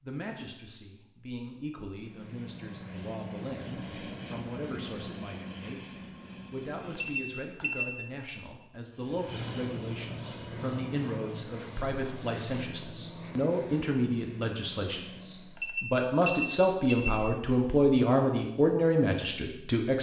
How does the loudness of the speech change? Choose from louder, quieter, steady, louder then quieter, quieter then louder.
louder.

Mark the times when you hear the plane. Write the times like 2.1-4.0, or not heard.
1.9-7.5, 8.9-15.8.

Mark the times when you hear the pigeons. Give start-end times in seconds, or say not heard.
not heard.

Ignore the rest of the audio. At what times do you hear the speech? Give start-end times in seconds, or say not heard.
0.0-19.9.